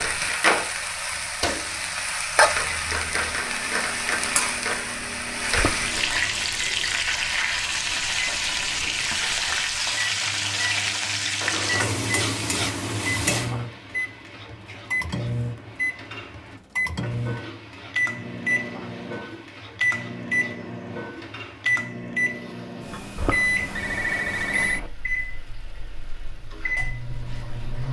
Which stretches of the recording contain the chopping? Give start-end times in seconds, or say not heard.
not heard.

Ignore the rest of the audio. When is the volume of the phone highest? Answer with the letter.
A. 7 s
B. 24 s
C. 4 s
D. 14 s
B.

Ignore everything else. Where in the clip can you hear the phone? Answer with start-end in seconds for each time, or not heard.
5.5-6.3, 23.1-24.9.